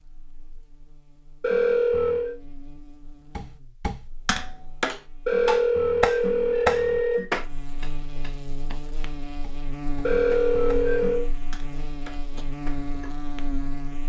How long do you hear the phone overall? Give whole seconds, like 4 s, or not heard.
4 s.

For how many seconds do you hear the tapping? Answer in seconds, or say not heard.
10 s.